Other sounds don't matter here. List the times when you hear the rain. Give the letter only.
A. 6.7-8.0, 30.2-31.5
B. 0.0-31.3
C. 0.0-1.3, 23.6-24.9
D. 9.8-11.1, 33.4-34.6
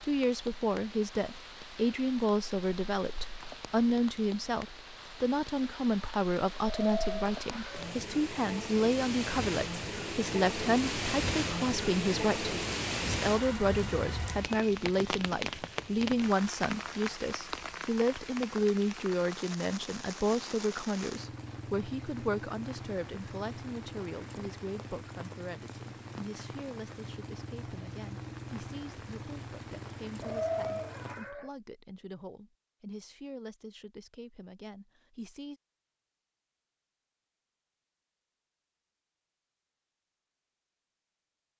B.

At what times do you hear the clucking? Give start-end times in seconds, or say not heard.
6.7-8.0, 30.2-31.5.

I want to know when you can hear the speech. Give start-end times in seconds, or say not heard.
0.0-35.6.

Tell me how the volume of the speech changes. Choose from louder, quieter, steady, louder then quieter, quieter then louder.
quieter.